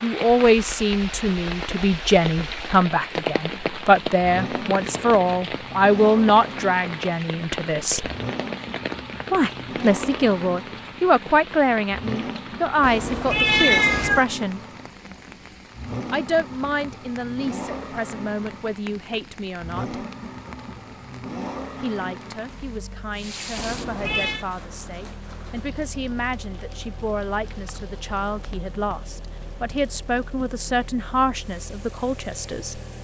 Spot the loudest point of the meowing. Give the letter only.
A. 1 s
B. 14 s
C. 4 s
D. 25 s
B.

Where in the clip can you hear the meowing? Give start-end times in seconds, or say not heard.
12.8-14.2, 23.6-24.4.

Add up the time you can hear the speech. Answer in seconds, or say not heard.
28 s.